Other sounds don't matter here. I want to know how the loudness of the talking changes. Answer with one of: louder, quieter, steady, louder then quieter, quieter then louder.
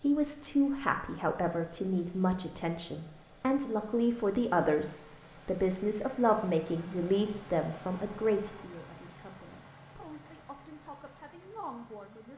quieter.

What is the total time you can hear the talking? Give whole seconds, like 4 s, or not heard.
12 s.